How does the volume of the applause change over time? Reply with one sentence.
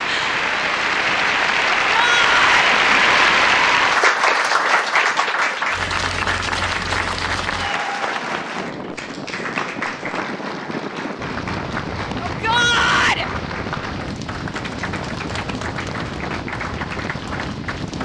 The loudness of the applause goes down.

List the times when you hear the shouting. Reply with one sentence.
You can hear the shouting from 1.9 to 2.8 s and from 12.2 to 13.2 s.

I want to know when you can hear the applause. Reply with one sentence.
You can hear the applause from 0.0 to 18.0 s.